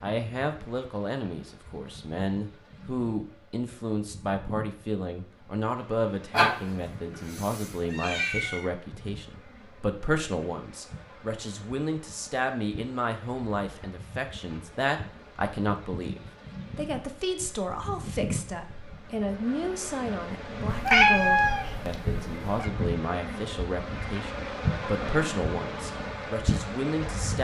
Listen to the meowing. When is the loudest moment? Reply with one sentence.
The loudest moment of the meowing is at 21 seconds.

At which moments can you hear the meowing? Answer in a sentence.
The meowing can be heard from 6.3 to 8.7 s and from 20.7 to 22.7 s.